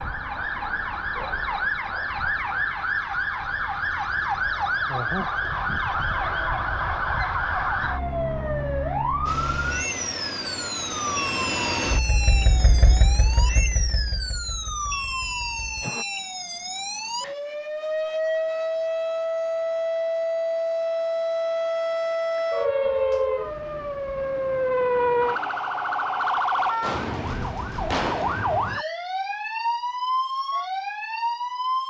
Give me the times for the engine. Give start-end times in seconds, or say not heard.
9.2-16.1.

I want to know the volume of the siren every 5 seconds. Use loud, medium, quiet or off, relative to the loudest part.
loud, loud, medium, loud, loud, loud, loud.